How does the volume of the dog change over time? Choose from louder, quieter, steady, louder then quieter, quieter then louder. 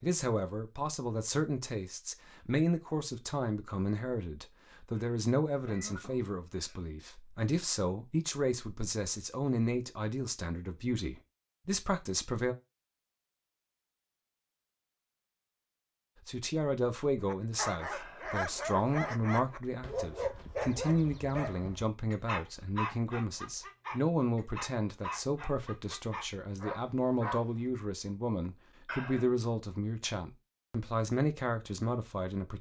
quieter.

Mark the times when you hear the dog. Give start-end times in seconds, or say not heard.
17.2-27.6.